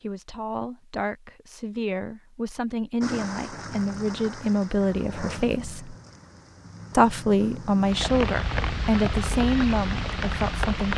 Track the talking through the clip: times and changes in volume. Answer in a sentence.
The talking can be heard from 0.0 to 6.0 s, getting louder; and from 6.9 to 10.9 s, getting quieter.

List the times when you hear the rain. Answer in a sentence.
You can hear the rain from 3.0 to 10.9 s.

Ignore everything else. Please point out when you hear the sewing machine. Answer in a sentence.
The sewing machine can't be heard in this clip.